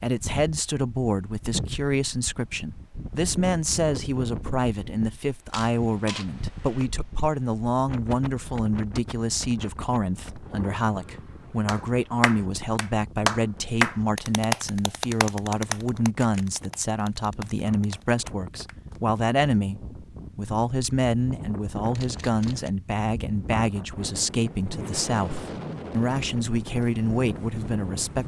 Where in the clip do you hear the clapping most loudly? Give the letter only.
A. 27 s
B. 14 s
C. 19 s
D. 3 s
B.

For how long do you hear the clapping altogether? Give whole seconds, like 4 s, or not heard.
7 s.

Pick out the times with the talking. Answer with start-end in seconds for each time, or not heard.
0.0-28.2.